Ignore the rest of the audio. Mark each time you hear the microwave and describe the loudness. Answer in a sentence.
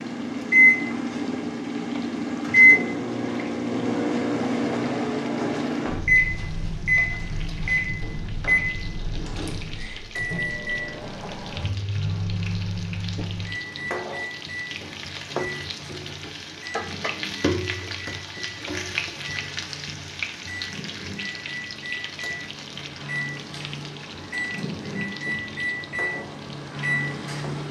The microwave can be heard from 0.0 to 27.6 s, getting quieter then louder.